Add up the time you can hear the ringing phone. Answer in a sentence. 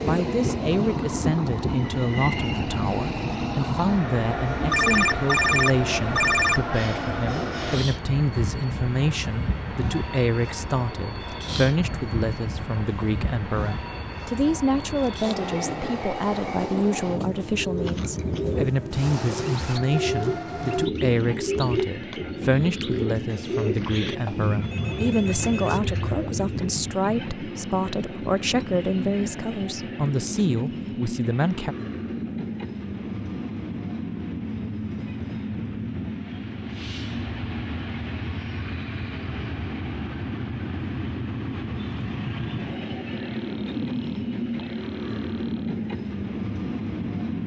The ringing phone can be heard for 6 seconds in total.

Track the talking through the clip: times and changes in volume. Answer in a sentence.
You can hear the talking from 0.0 to 31.8 s, at a steady volume.